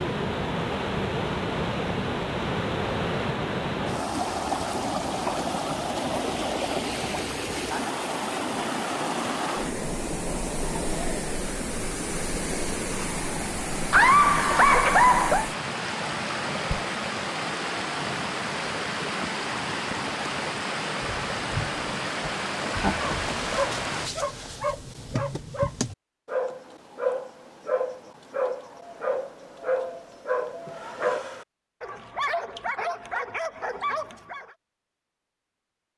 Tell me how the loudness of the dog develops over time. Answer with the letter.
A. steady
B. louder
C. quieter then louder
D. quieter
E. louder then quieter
A.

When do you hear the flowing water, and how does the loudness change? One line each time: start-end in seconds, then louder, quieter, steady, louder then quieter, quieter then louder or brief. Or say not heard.
0.0-24.1 steady.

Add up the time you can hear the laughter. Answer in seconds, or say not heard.
2 s.